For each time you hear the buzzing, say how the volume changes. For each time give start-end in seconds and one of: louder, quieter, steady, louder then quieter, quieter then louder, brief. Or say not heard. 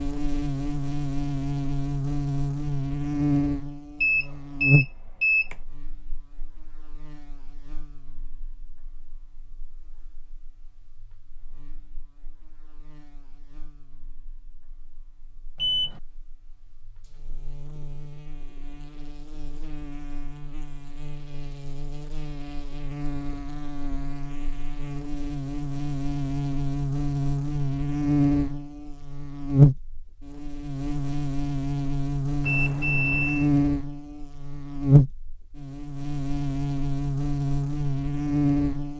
0.0-38.9 quieter then louder.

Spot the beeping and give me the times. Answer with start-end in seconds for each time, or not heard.
4.0-5.5, 15.6-16.0, 32.4-33.5.